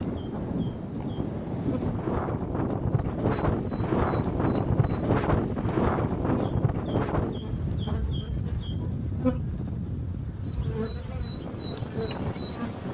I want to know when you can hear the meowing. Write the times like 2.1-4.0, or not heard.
not heard.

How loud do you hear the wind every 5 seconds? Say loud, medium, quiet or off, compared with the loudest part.
loud, loud, medium.